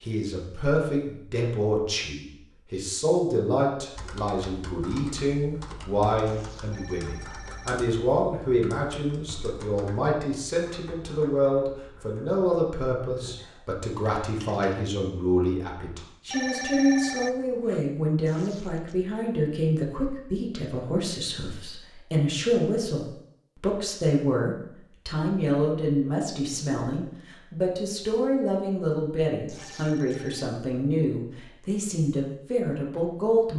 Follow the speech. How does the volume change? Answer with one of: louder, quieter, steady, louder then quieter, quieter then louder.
steady.